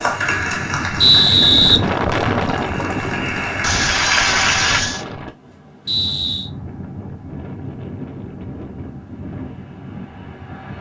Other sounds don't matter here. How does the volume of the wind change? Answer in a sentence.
The volume of the wind goes down.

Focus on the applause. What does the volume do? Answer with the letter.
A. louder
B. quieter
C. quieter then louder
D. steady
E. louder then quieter
C.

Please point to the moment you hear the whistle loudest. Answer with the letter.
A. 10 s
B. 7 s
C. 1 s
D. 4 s
C.